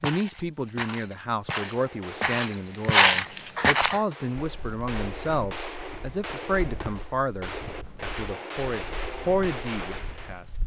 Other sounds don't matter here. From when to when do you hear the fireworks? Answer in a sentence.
You can hear the fireworks from 1.6 to 10.4 s.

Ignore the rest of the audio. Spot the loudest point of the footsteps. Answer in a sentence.
The volume of the footsteps peaks at 3 seconds.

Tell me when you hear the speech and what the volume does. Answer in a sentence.
The speech can be heard from 0.0 to 10.4 s, at a steady volume.